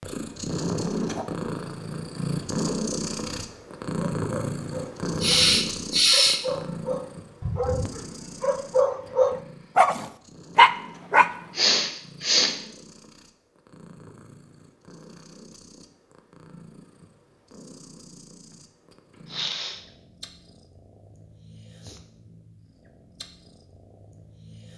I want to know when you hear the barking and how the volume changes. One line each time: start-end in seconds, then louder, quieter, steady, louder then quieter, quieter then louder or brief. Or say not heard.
3.4-11.7 louder.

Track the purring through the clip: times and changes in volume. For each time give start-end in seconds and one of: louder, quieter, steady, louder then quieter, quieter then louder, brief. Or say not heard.
0.0-24.7 quieter.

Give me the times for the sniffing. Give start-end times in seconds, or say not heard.
5.2-6.4, 11.6-12.6, 19.2-19.9.